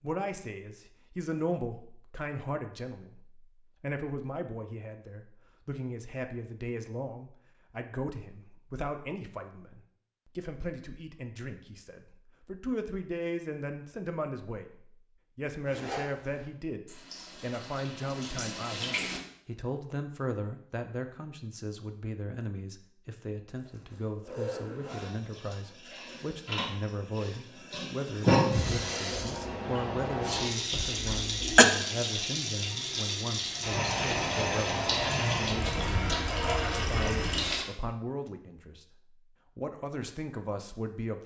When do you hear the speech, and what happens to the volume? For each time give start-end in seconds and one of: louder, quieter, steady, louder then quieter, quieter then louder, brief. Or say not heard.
0.0-38.9 steady
39.5-41.2 brief.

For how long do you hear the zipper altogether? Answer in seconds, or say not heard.
2 s.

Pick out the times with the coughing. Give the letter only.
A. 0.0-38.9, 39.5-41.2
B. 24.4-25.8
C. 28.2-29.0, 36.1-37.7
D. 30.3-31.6
D.